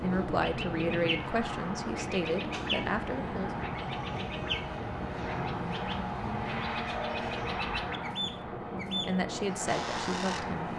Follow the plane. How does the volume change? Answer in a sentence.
The volume of the plane stays about the same.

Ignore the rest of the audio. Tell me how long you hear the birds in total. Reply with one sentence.
The birds can be heard for 11 seconds in total.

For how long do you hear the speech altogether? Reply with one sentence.
The speech can be heard for 5 seconds in total.